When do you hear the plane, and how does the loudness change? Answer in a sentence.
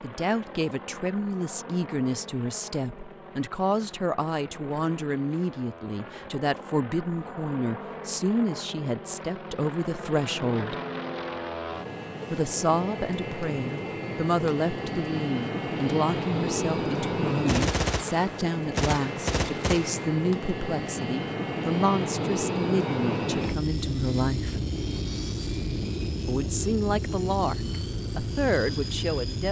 The plane can be heard from 0.0 to 29.4 s, getting louder.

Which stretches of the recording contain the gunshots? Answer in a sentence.
The gunshots can be heard from 17.4 to 20.2 s.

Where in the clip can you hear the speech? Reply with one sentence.
The speech can be heard from 0.0 to 10.8 s, from 12.3 to 24.6 s and from 26.2 to 29.4 s.